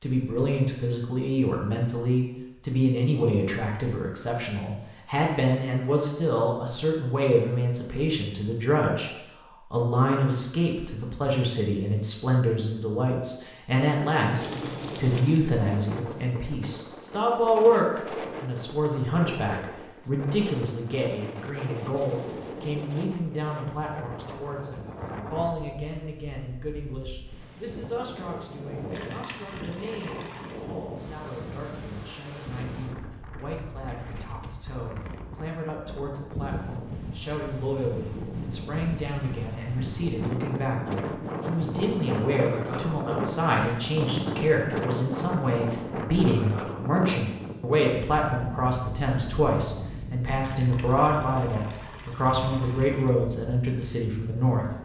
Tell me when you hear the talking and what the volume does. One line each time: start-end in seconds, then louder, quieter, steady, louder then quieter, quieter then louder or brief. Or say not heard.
0.0-54.7 quieter then louder.